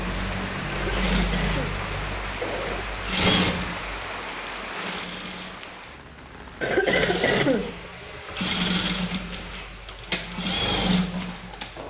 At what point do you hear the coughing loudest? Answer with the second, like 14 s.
7 s.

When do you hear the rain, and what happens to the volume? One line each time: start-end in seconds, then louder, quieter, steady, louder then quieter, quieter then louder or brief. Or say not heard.
0.0-6.8 quieter.